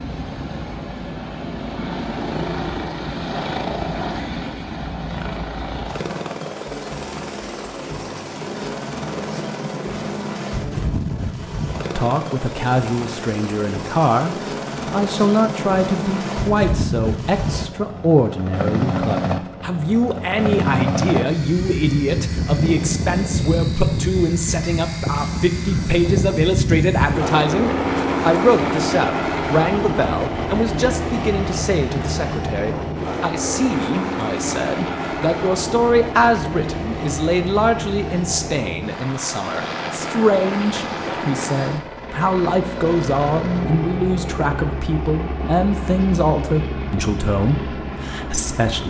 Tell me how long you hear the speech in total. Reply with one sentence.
The speech can be heard for 37 seconds in total.